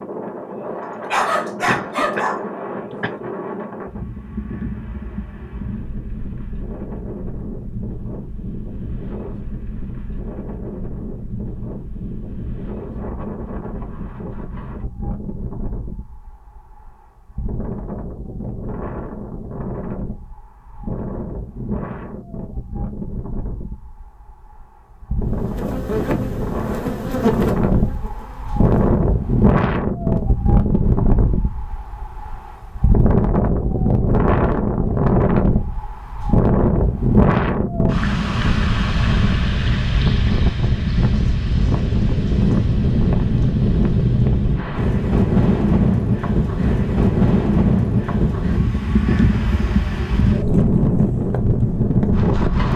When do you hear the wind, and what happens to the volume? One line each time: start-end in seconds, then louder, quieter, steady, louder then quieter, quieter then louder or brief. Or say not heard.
0.0-52.7 louder.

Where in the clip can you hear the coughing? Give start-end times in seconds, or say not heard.
1.6-3.1.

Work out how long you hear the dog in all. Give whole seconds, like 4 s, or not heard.
2 s.